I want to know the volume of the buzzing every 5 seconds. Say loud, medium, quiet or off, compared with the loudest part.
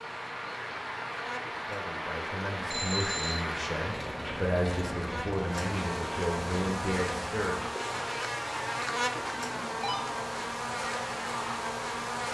medium, loud, loud.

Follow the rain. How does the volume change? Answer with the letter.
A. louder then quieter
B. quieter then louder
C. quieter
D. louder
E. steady
C.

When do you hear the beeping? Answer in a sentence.
You can hear the beeping from 2.7 to 3.5 s and from 9.3 to 10.2 s.